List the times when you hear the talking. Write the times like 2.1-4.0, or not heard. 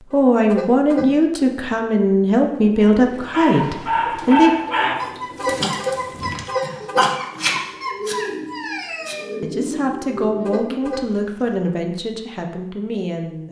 0.1-4.5, 9.4-13.4.